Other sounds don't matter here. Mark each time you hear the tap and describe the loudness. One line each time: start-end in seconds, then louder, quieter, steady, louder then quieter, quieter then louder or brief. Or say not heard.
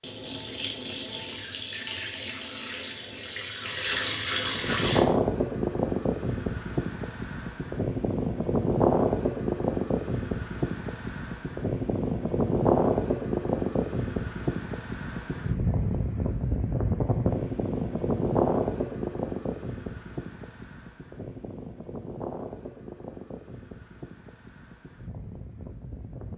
0.0-5.0 louder.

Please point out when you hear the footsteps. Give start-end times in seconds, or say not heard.
not heard.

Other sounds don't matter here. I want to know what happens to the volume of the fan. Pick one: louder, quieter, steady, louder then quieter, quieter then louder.
quieter.